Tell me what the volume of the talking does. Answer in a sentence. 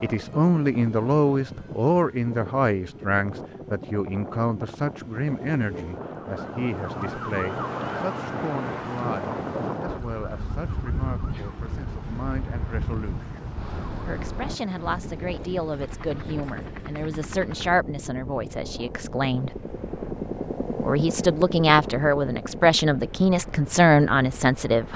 The volume of the talking goes down, then up.